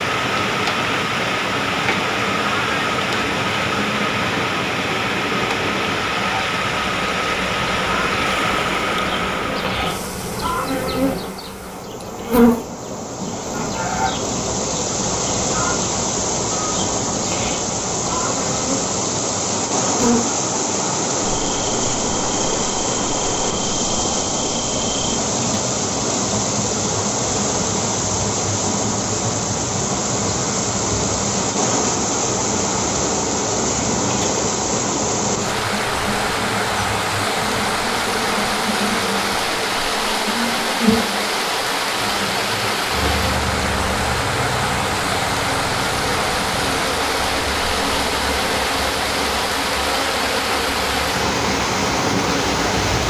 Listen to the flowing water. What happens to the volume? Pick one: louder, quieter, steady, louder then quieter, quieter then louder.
steady.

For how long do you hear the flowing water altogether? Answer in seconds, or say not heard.
53 s.